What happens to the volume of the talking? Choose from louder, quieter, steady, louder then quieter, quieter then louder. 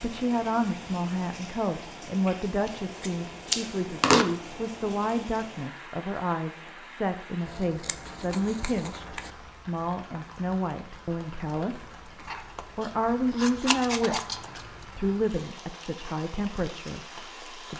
steady.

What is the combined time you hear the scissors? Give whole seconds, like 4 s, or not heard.
6 s.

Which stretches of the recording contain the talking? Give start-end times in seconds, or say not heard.
0.0-17.7.